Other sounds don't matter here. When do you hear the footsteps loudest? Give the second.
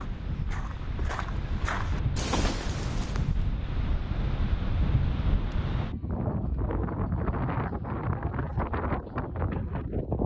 2 s.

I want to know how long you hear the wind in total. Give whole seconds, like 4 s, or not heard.
10 s.